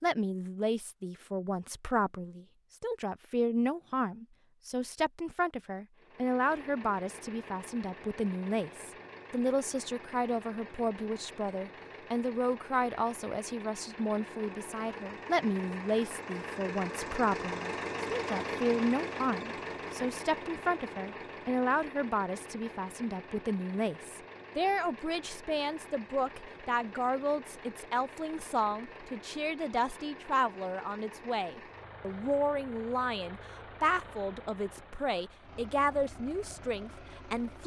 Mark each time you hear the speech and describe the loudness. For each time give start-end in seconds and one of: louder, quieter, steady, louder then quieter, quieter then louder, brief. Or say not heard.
0.0-37.6 steady.